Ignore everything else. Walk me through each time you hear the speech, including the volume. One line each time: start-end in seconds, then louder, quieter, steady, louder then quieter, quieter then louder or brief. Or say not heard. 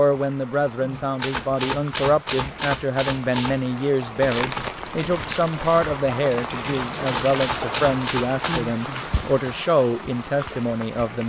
0.0-11.2 steady.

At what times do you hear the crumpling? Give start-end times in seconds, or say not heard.
4.2-5.8.